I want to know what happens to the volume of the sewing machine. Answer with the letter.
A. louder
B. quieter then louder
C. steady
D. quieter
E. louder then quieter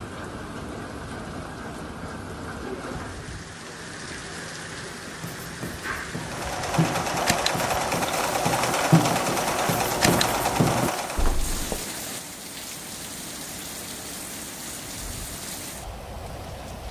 C.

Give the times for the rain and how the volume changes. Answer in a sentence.
The rain can be heard from 0.0 to 16.8 s, at a steady volume.